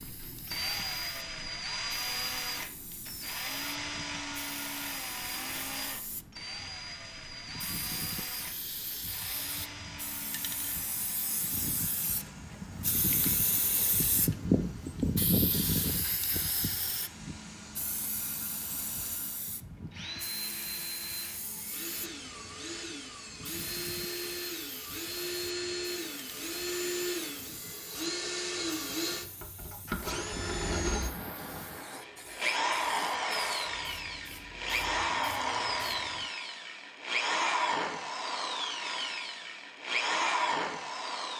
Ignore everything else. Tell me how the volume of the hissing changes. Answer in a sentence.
The volume of the hissing goes up, then down.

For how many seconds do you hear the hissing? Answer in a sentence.
You can hear the hissing for 36 seconds altogether.